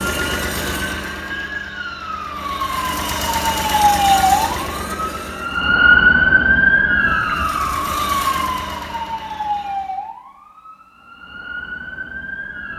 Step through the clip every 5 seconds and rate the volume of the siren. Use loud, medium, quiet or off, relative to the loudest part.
loud, loud, quiet.